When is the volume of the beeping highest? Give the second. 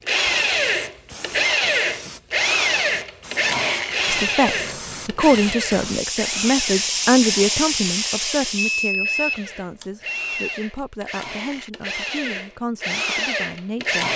9 s.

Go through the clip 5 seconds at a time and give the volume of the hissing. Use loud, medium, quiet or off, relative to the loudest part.
quiet, loud, off.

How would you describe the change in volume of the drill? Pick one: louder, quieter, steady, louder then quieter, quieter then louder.
quieter then louder.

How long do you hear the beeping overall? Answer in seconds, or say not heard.
2 s.